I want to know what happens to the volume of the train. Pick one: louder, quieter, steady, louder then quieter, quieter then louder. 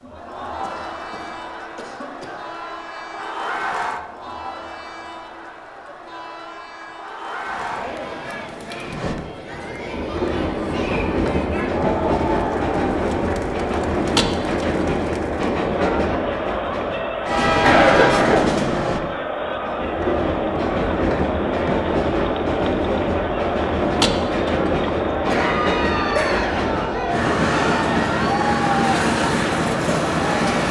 louder.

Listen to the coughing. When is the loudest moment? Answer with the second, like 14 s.
18 s.